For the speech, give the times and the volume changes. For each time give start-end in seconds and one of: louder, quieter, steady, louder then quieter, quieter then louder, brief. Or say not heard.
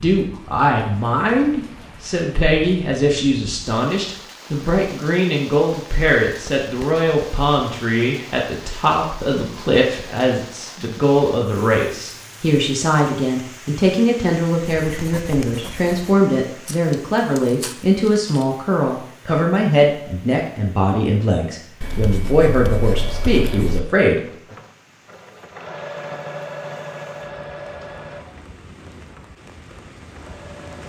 0.0-24.2 steady.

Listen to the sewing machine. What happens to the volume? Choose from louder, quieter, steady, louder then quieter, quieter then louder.
louder then quieter.